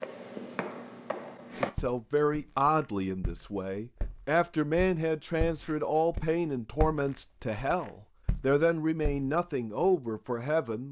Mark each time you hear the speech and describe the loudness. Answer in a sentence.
You can hear the speech from 1.5 to 10.8 s, at a steady volume.